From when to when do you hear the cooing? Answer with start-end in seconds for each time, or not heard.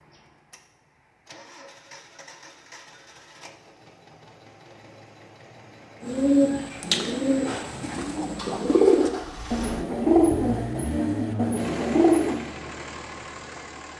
6.0-12.4.